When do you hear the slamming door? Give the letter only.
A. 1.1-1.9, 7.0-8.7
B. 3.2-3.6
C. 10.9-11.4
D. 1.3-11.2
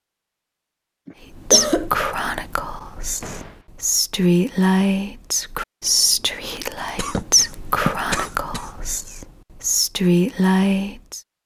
B.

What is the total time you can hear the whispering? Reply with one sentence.
You can hear the whispering for 10 seconds altogether.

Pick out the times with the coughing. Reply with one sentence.
The coughing can be heard from 1.1 to 1.9 s and from 7.0 to 8.7 s.